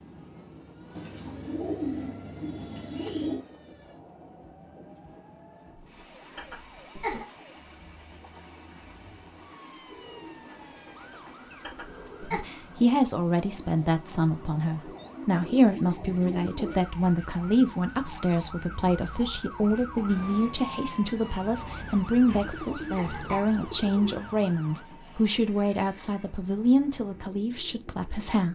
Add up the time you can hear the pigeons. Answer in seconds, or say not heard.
9 s.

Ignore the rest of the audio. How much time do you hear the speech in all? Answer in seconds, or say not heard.
16 s.